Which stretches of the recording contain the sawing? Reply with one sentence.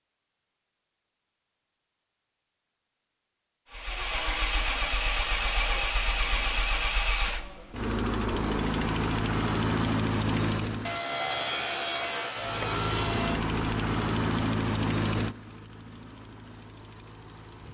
The sawing can be heard from 10.8 to 13.4 s.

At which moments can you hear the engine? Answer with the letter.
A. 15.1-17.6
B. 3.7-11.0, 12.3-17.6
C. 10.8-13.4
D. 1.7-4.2
B.